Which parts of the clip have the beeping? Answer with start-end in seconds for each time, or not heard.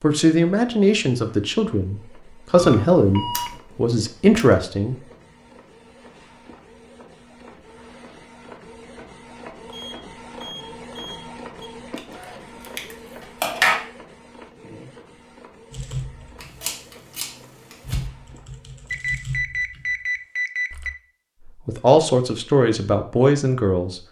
2.5-3.6, 9.7-11.7, 18.9-20.9.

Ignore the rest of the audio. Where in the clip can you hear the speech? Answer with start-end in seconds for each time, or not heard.
0.0-5.0, 21.4-24.0.